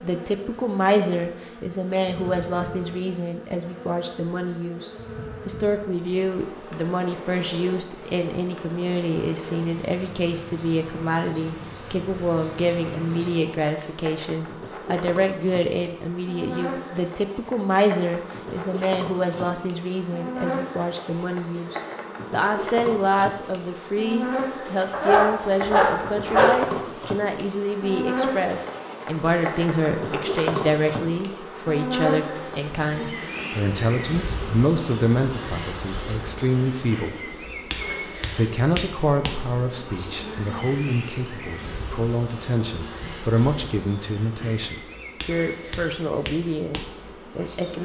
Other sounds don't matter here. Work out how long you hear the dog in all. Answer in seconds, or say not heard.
2 s.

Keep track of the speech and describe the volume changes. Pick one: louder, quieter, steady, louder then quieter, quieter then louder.
steady.